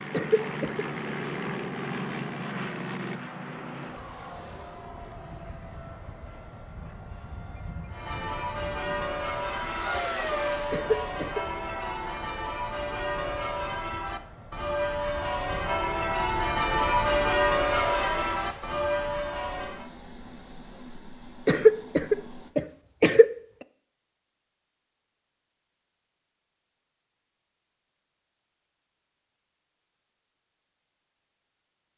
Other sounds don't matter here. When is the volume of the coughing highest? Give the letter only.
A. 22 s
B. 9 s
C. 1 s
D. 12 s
A.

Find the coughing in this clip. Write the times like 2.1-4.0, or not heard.
0.1-0.8, 10.7-11.4, 21.4-23.2.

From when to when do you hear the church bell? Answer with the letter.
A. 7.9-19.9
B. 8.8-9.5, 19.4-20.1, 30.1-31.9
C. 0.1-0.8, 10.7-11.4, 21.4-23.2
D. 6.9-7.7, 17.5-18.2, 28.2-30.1
A.